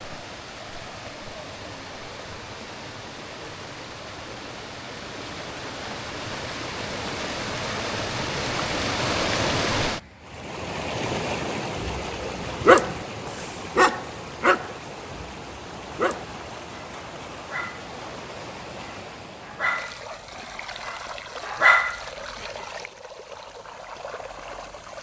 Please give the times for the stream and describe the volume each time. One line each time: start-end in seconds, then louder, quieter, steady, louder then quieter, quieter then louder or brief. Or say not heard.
0.0-24.9 louder then quieter.